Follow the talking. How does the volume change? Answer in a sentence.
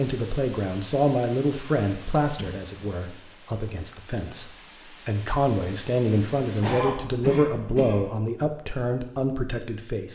The loudness of the talking goes down, then up.